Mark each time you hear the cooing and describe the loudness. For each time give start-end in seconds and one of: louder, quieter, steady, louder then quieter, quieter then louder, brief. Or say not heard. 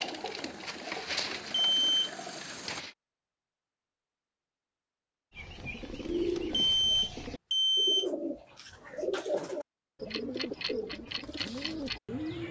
0.0-3.0 brief
5.3-12.4 steady.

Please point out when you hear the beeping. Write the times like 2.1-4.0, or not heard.
1.5-2.1, 6.5-8.1.